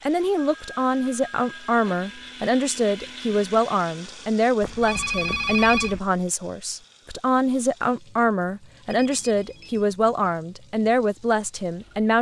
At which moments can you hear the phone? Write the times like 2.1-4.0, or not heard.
0.3-2.3, 4.6-6.0, 8.9-9.8.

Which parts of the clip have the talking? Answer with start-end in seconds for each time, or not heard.
0.0-12.1.